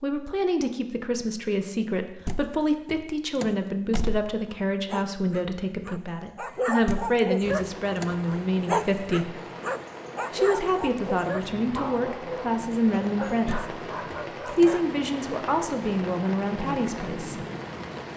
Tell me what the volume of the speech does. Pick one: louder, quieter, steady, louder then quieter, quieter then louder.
steady.